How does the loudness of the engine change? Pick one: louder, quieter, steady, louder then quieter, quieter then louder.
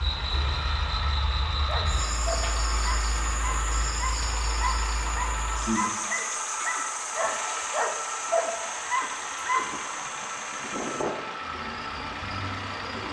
steady.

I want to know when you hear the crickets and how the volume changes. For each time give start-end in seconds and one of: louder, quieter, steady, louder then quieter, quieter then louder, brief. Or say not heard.
0.0-13.0 quieter.